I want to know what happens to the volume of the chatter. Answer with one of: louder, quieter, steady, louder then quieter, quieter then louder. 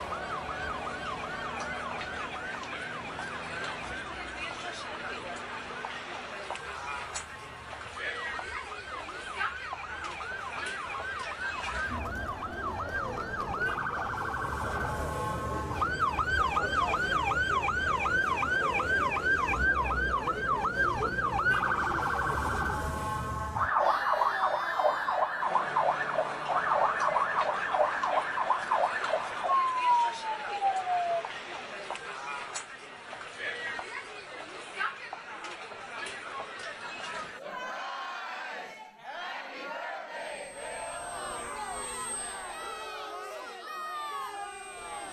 steady.